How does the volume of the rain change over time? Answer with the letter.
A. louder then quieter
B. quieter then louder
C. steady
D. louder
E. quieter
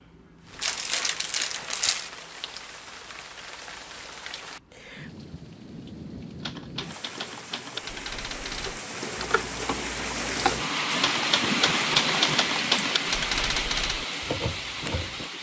D.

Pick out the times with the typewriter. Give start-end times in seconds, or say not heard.
6.4-15.3.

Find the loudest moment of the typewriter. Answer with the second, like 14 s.
12 s.